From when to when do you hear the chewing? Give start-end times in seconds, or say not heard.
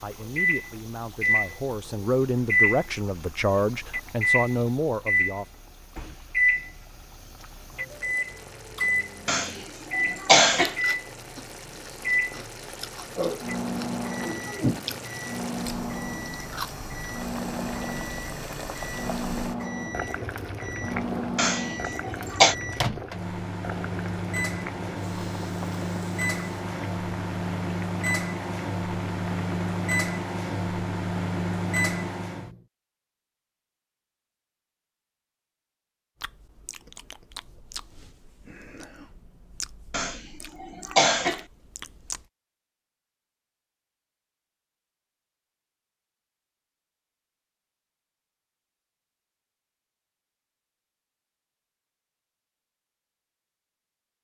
10.6-16.7, 36.2-42.3.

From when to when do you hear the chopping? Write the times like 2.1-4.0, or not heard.
not heard.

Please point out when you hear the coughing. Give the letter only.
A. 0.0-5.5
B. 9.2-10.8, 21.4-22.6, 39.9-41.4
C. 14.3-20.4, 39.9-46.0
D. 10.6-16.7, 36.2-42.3
B.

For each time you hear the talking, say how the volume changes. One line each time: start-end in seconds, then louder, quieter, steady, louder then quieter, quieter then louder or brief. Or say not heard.
0.0-5.5 louder.